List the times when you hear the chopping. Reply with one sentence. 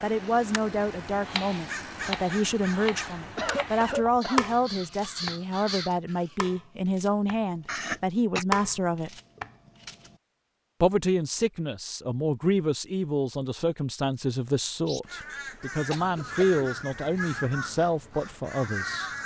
The chopping can be heard from 1.1 to 10.2 s.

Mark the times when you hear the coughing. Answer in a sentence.
The coughing can be heard from 3.4 to 4.5 s, from 7.7 to 8.4 s and from 15.9 to 16.4 s.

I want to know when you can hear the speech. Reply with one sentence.
The speech can be heard from 0.0 to 9.1 s and from 10.8 to 19.1 s.